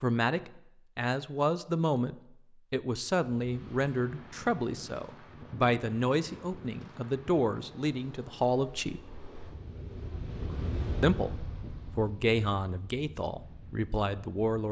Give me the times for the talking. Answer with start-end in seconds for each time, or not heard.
0.0-9.0, 11.0-14.6.